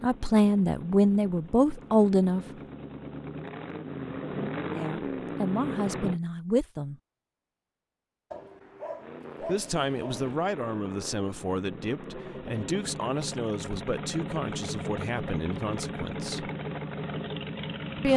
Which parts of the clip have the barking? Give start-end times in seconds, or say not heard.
8.3-10.3.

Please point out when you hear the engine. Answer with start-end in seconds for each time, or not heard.
0.0-6.2, 8.9-18.1.